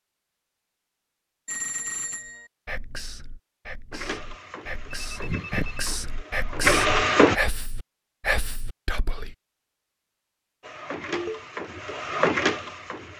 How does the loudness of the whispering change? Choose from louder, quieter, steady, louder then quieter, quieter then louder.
louder.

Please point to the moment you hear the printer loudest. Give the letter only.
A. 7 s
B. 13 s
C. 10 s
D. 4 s
A.